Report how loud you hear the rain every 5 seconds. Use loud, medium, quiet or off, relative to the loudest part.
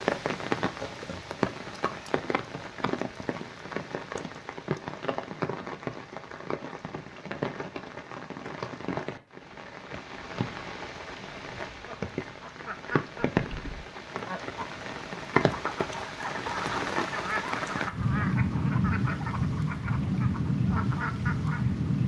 medium, medium, medium, loud, loud.